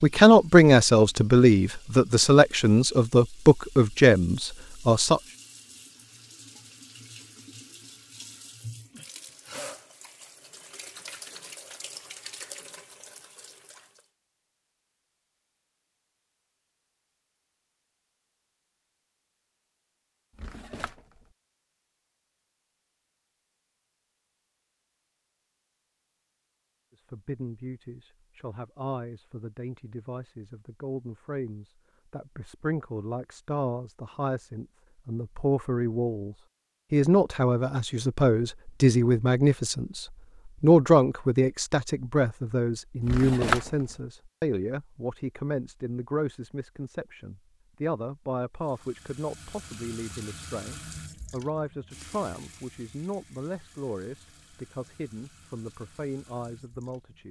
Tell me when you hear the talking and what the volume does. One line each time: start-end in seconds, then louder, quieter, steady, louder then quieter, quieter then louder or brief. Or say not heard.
0.0-5.2 steady
26.9-57.2 louder then quieter.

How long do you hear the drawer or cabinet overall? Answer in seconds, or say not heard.
2 s.